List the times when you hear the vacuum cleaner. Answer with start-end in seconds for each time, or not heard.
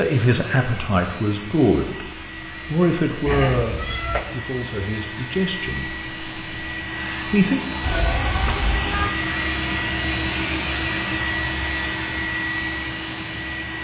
0.0-13.7.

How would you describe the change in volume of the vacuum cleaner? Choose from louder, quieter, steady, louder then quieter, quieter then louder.
louder.